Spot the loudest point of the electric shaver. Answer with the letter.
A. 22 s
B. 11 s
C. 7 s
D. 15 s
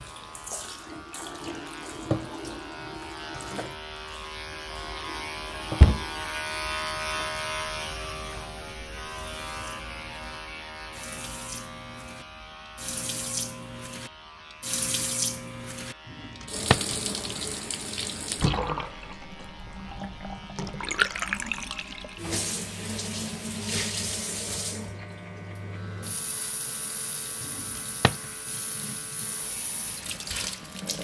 C.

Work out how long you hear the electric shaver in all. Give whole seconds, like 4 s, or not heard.
31 s.